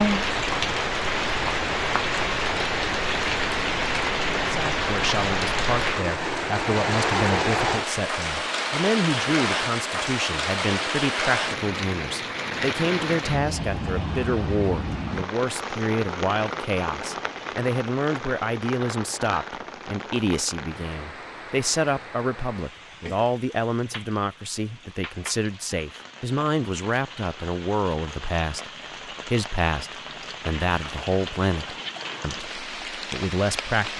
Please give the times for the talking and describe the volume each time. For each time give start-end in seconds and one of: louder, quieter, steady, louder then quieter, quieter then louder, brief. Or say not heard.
4.5-33.9 steady.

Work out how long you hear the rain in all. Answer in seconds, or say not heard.
34 s.